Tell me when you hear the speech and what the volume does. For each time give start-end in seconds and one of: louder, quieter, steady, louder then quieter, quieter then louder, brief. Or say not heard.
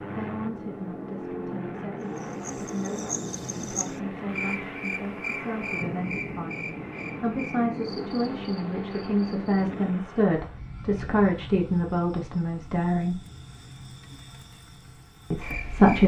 0.0-13.2 louder
15.3-16.0 brief.